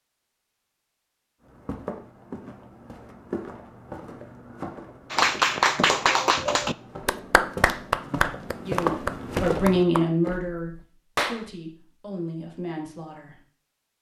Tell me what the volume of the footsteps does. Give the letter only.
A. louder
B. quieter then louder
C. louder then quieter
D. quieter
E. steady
A.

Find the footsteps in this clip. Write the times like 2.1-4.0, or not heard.
1.4-10.4.